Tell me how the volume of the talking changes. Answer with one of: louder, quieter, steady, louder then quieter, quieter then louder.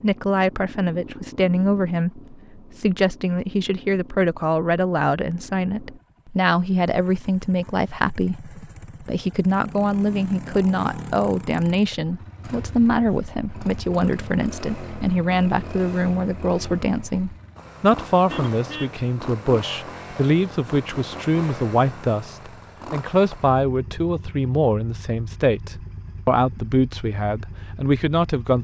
steady.